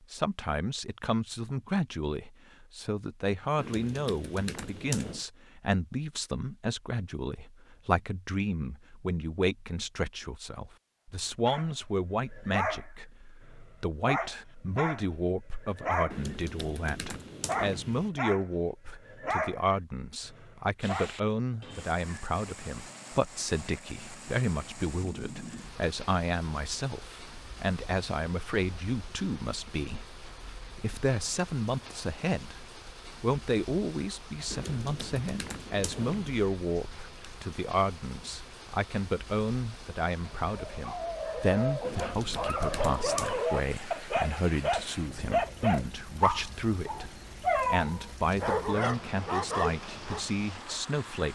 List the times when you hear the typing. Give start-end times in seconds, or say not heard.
3.5-5.2, 16.1-18.1, 34.5-36.5, 41.8-43.5.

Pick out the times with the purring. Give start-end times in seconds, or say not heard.
not heard.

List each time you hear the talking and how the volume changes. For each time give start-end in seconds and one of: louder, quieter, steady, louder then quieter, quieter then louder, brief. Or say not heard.
0.1-51.3 steady.